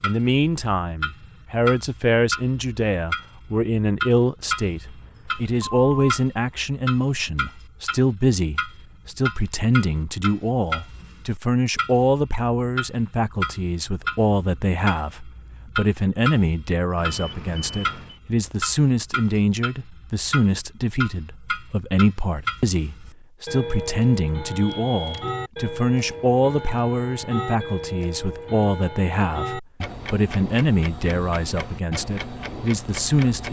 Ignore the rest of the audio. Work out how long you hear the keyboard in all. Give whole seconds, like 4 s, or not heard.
not heard.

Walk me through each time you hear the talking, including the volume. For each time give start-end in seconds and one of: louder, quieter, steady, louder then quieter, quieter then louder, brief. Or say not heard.
0.0-33.4 steady.